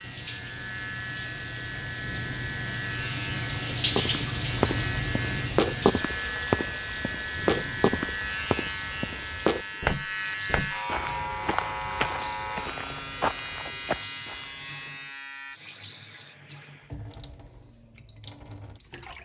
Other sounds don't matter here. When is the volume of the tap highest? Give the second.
4 s.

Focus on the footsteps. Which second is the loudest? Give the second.
6 s.